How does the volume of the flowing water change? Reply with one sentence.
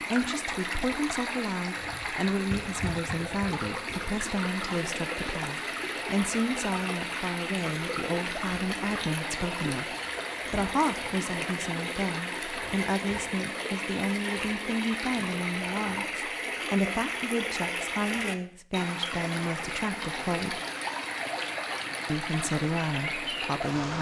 The loudness of the flowing water stays about the same.